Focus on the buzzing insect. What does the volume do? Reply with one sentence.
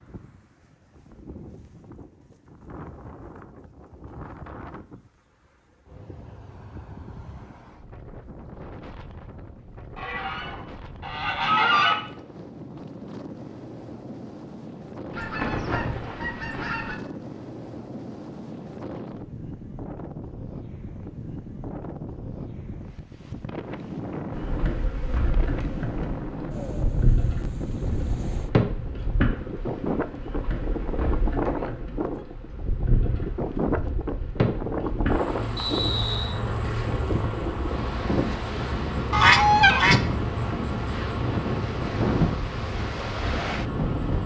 The volume of the buzzing insect stays about the same.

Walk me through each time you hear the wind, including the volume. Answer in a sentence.
You can hear the wind from 0.0 to 44.2 s, getting louder.